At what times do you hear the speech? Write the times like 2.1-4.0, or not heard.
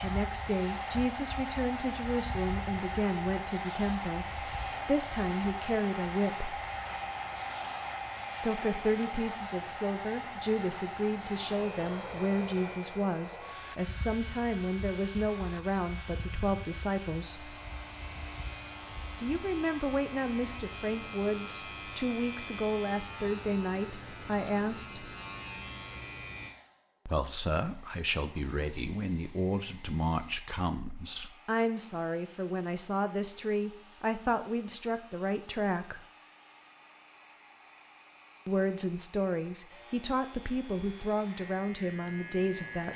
0.0-6.5, 8.4-17.6, 19.2-25.1, 27.1-36.0, 38.5-42.9.